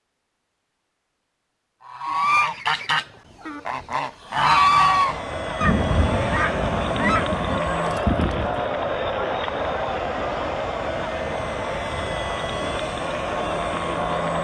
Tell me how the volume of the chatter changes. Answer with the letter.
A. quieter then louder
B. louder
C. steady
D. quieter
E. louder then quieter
C.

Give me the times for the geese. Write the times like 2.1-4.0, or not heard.
1.9-8.6.